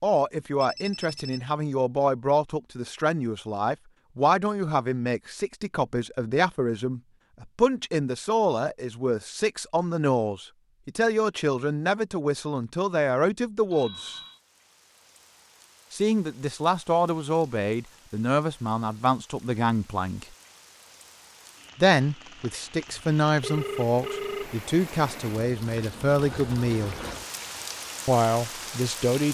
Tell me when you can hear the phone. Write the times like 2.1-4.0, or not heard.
0.6-1.5, 13.7-14.4, 22.9-24.6.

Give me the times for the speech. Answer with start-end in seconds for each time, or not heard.
0.0-14.2, 15.9-20.2, 21.8-26.9, 28.1-29.2.